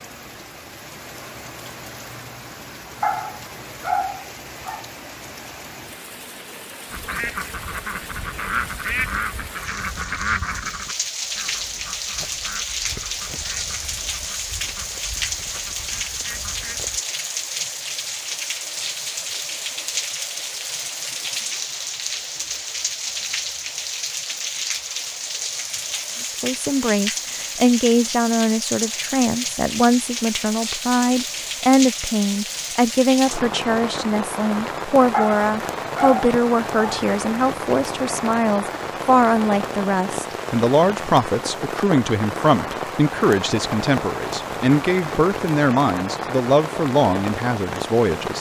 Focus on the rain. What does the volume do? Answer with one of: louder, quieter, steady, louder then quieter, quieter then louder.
louder.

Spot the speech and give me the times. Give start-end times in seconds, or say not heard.
26.4-48.3.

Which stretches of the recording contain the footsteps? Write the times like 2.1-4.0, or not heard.
not heard.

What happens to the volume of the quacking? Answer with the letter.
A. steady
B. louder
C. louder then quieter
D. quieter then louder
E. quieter
E.